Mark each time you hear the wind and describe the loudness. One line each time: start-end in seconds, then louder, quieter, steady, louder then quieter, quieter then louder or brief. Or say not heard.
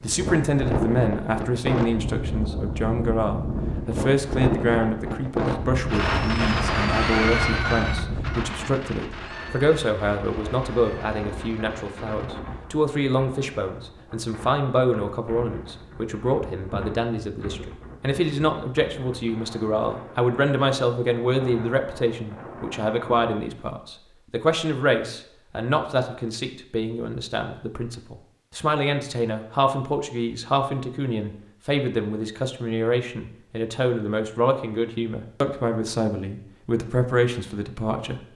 0.0-23.4 quieter.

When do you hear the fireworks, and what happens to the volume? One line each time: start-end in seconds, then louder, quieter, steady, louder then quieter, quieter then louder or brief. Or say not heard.
5.8-12.3 quieter.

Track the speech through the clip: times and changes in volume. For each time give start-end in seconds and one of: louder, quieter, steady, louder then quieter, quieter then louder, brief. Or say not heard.
0.0-38.2 steady.